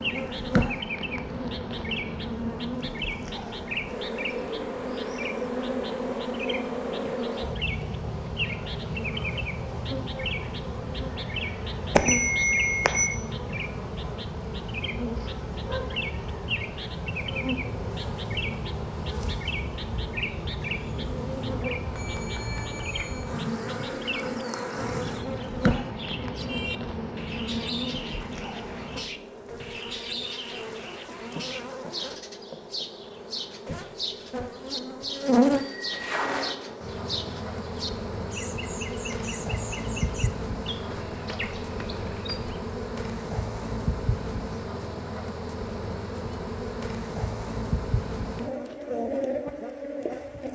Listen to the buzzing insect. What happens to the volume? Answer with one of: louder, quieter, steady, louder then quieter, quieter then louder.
steady.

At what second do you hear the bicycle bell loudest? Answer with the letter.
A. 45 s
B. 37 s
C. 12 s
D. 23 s
C.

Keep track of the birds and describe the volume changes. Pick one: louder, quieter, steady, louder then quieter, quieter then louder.
steady.